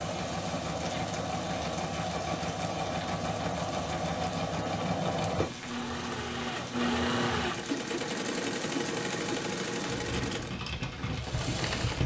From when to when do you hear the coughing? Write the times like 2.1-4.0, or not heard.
not heard.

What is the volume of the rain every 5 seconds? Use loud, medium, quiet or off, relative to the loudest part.
medium, medium, loud.